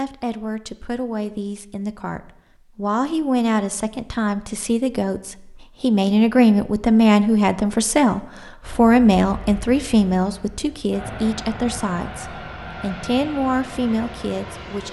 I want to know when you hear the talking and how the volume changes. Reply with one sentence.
You can hear the talking from 0.0 to 14.8 s, getting louder then quieter.